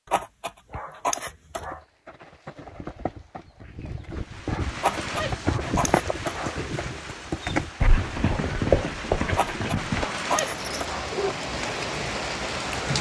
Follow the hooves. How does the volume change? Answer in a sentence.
The loudness of the hooves goes up.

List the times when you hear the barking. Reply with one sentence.
You can hear the barking from 0.1 to 1.8 s, from 4.8 to 6.6 s and from 9.3 to 11.3 s.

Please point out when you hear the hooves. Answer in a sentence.
The hooves can be heard from 1.6 to 10.1 s.